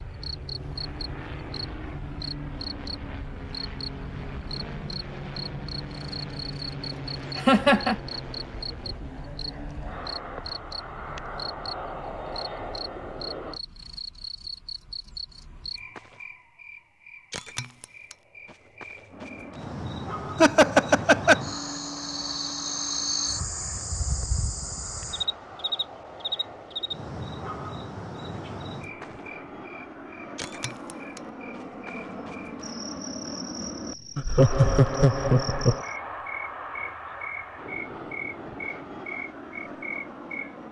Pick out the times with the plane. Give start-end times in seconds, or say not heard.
0.0-13.6, 19.1-40.6.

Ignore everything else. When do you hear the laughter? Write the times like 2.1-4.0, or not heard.
7.3-8.0, 20.4-21.4, 34.1-35.8.